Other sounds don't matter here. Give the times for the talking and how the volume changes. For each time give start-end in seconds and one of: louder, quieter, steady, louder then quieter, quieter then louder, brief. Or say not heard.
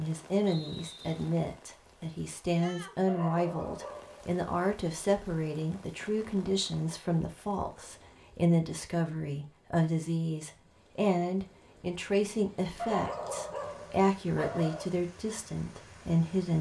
0.0-16.5 steady.